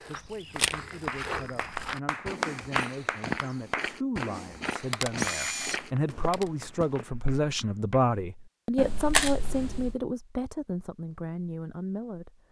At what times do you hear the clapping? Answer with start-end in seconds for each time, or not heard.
0.6-8.1.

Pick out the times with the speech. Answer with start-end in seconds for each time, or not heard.
0.0-12.4.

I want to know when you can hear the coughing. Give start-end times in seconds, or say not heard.
not heard.